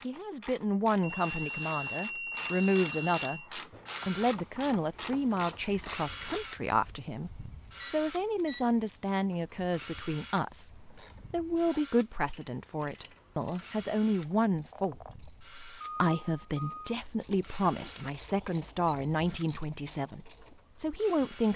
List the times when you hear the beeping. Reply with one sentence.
You can hear the beeping from 1.0 to 3.5 s, from 7.8 to 8.7 s and from 15.8 to 16.9 s.